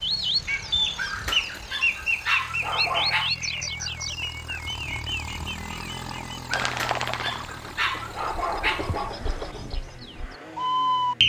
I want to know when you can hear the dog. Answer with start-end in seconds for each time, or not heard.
0.9-3.3, 6.6-9.2.